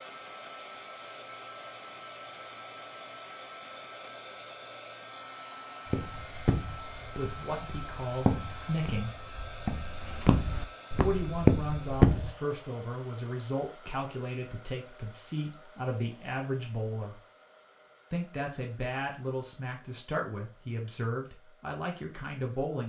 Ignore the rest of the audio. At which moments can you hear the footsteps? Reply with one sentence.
The footsteps can be heard from 5.9 to 12.3 s.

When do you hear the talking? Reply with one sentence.
The talking can be heard from 7.2 to 9.2 s, from 10.9 to 17.2 s and from 18.1 to 22.8 s.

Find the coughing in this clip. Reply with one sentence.
You can't hear the coughing here.